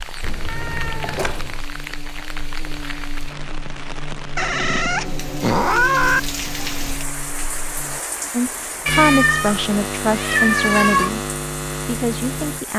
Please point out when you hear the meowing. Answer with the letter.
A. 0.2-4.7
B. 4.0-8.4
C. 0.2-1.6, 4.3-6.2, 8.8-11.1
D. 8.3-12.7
C.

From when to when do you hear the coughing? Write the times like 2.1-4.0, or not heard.
not heard.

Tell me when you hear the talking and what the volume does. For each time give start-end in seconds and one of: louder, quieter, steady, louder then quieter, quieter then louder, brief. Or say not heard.
8.3-12.7 quieter.